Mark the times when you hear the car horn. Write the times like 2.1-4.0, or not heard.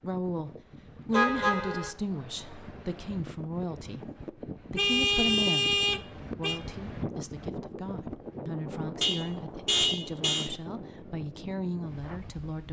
1.1-1.9, 4.8-6.6, 9.0-10.5.